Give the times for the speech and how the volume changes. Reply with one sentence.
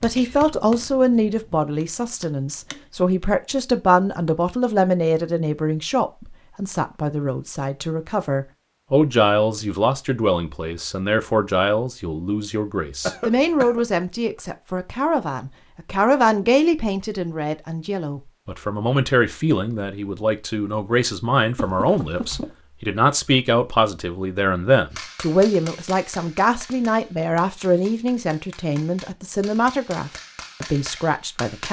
The speech can be heard from 0.0 to 31.6 s, at a steady volume.